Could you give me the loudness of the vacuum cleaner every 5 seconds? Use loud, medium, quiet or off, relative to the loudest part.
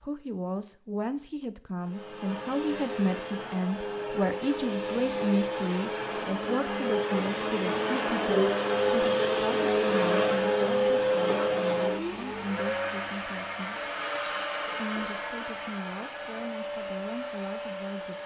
medium, loud, loud, medium.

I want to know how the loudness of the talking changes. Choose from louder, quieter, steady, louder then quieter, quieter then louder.
quieter.